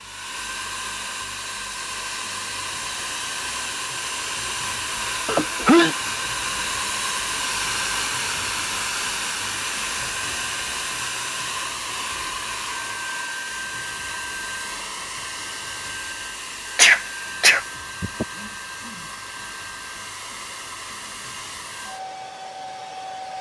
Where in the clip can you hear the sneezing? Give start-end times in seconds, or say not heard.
5.2-6.0, 16.8-18.2.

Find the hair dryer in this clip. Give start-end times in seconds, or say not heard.
0.0-23.3.